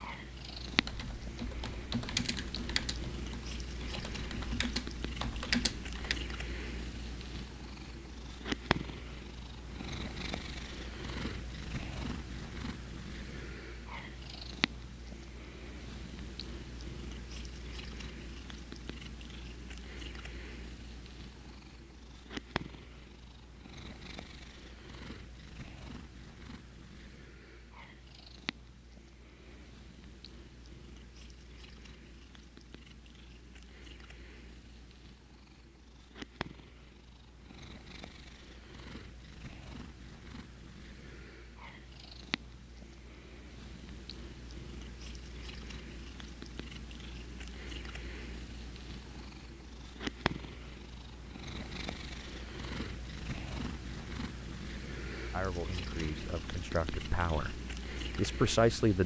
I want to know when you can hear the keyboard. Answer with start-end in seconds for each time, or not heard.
0.7-6.2.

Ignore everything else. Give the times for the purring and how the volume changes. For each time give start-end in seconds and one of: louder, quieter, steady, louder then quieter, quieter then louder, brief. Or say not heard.
0.0-59.0 quieter then louder.